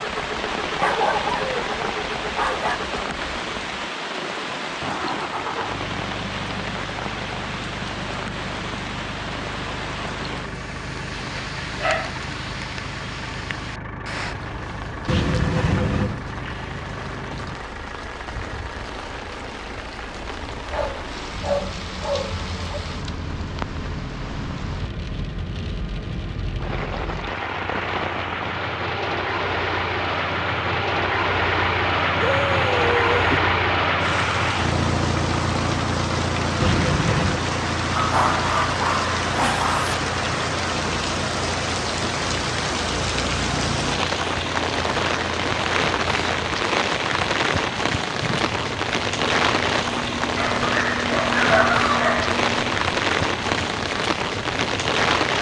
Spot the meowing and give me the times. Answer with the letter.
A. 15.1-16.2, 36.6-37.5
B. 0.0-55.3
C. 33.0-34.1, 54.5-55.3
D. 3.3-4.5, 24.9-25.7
A.